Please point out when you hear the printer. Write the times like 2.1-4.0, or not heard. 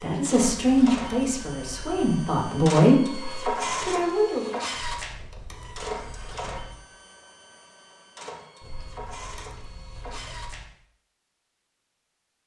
0.0-10.7.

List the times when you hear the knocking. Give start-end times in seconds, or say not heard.
not heard.